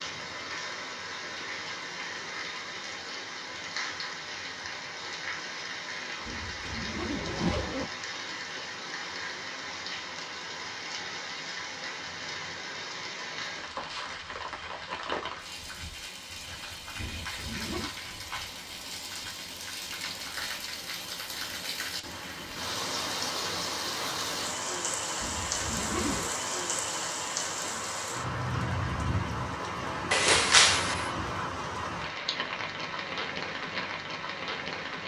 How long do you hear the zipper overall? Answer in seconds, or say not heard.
4 s.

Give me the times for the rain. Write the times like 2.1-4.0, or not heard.
0.0-35.0.